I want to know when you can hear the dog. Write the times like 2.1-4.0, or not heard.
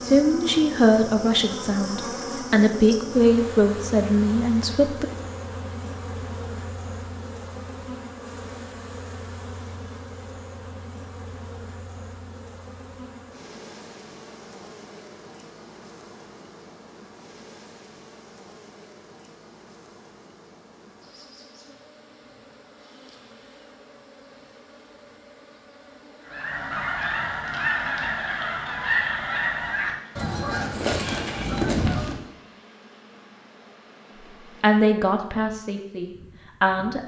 not heard.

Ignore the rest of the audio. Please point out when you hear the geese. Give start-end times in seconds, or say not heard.
26.2-32.1.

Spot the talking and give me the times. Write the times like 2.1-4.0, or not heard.
0.0-5.0, 34.6-37.0.